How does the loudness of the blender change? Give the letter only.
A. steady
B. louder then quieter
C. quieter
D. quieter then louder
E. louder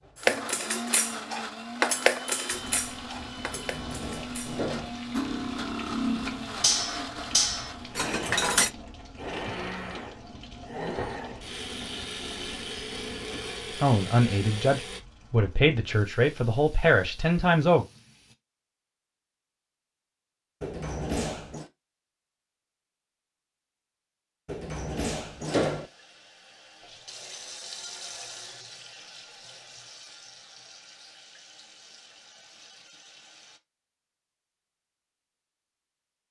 A.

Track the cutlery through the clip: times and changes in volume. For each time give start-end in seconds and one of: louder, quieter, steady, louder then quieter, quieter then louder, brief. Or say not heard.
0.1-8.7 quieter then louder.